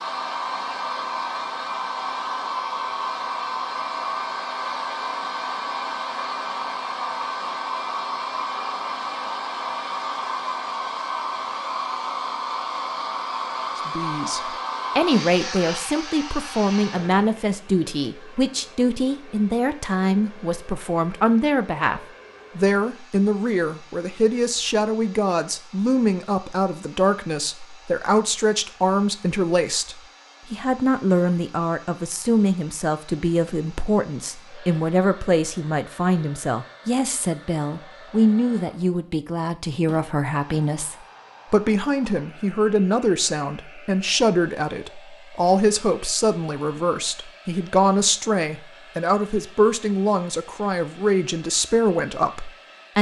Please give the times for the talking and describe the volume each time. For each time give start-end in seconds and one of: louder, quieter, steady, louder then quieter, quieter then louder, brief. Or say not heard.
13.8-52.9 steady.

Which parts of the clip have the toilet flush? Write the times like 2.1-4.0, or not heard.
not heard.